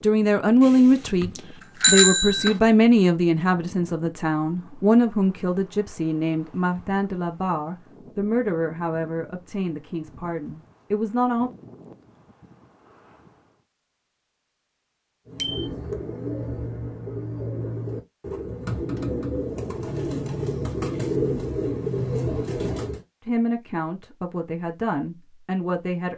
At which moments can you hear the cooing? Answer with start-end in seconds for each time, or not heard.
15.2-23.1.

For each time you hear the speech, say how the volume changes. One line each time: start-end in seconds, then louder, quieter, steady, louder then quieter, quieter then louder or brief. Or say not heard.
0.0-11.5 quieter
23.2-26.1 brief.